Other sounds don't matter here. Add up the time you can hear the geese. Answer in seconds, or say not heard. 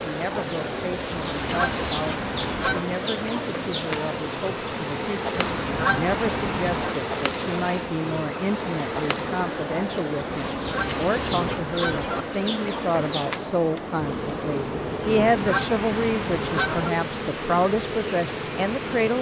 7 s.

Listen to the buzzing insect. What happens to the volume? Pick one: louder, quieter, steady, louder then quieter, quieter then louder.
steady.